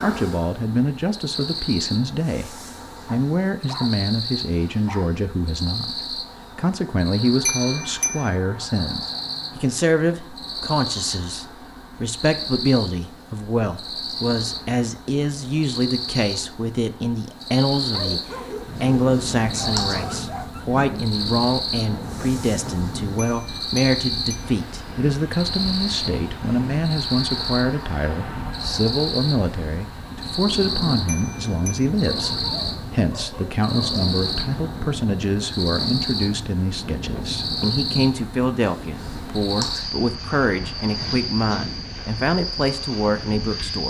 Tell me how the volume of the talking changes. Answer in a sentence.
The volume of the talking stays about the same.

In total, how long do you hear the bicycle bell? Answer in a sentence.
You can hear the bicycle bell for 3 seconds altogether.